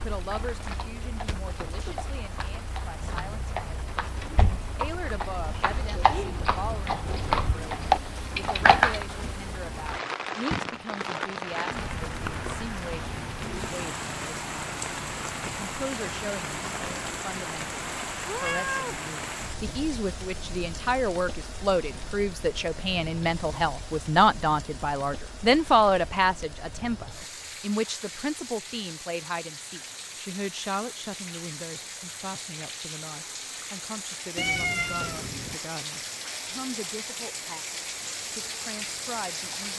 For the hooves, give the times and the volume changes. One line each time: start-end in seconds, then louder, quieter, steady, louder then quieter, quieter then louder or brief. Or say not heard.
0.1-9.1 louder.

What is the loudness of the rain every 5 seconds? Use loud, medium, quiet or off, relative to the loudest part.
medium, medium, loud, loud, medium, medium, medium, loud.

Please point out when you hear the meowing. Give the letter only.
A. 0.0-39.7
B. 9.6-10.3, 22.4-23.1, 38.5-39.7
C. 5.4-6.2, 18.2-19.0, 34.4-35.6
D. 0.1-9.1
C.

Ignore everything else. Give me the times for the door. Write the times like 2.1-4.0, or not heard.
4.2-4.8.